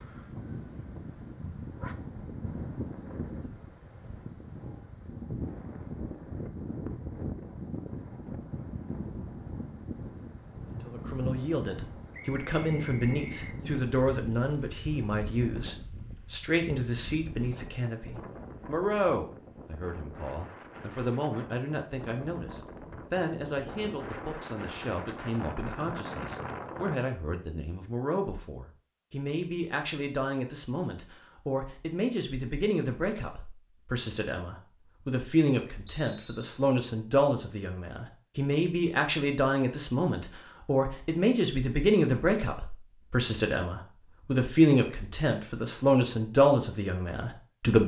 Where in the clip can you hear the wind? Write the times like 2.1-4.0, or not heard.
0.0-26.9.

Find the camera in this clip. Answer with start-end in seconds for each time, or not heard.
not heard.